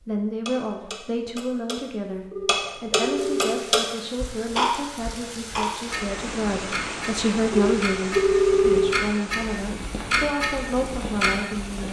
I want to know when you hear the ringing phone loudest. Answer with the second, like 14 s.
9 s.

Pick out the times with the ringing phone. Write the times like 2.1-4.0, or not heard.
2.3-3.6, 7.5-9.0.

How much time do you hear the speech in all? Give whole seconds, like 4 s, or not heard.
12 s.